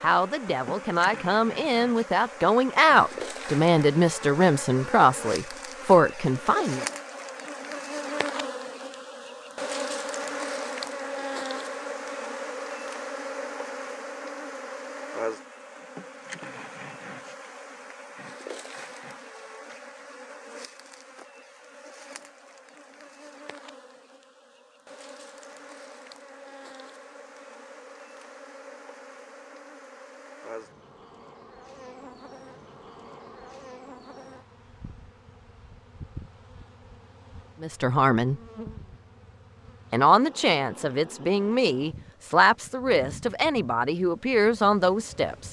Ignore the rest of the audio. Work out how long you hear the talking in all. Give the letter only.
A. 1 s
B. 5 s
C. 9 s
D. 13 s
D.